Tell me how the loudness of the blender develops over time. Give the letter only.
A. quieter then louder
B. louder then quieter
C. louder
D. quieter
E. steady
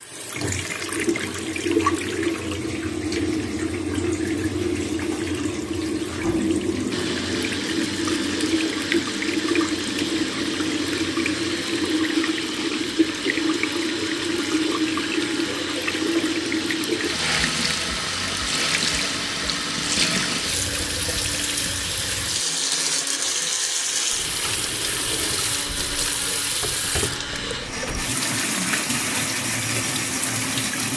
E.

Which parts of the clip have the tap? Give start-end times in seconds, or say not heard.
0.0-30.9.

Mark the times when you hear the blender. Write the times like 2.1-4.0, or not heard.
6.9-30.9.